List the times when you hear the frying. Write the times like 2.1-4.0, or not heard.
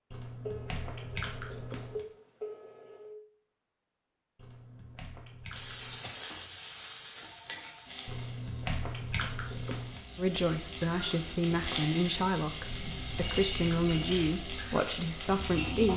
5.5-15.9.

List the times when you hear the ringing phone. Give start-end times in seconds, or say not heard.
0.5-3.2, 6.0-6.5, 7.2-7.8, 12.7-14.2.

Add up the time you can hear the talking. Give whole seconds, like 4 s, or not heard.
6 s.